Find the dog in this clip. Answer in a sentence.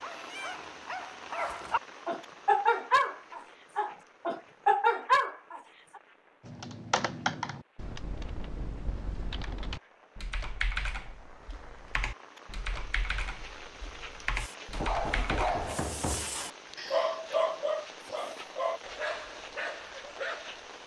The dog can be heard from 0.0 to 6.0 s and from 14.3 to 20.8 s.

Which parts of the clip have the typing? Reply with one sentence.
You can hear the typing from 6.5 to 15.7 s.